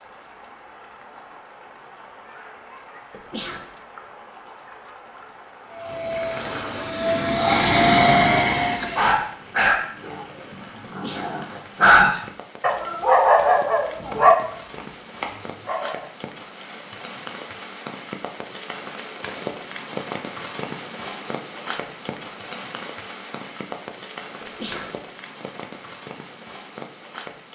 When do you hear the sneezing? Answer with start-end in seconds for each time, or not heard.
3.1-3.8, 10.8-11.5, 24.4-25.1.